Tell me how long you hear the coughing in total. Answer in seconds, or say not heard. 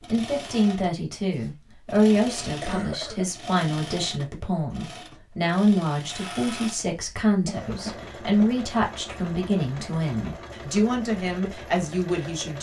2 s.